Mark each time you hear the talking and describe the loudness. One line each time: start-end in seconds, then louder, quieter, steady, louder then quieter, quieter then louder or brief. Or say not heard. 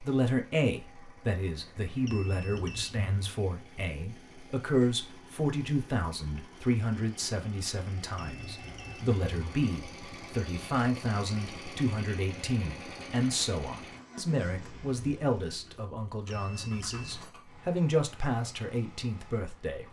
0.0-19.8 steady.